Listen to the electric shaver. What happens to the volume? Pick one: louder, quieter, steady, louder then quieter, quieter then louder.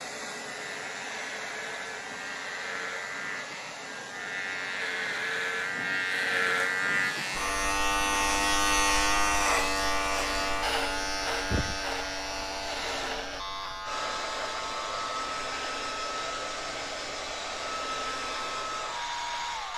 louder then quieter.